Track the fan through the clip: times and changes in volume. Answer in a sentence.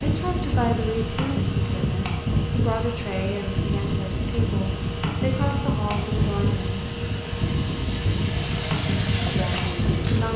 The fan can be heard from 0.0 to 10.3 s, at a steady volume.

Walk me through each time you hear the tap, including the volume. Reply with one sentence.
You can hear the tap from 5.7 to 10.3 s, getting louder.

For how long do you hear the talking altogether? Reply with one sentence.
The talking can be heard for 8 seconds in total.